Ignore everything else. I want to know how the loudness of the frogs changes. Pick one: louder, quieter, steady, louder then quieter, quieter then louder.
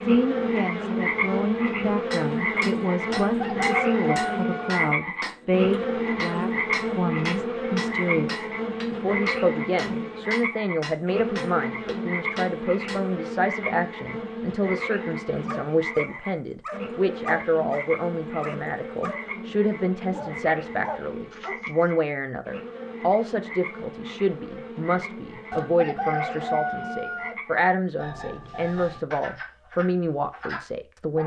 quieter.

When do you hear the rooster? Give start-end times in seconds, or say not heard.
3.2-4.7, 25.5-27.4.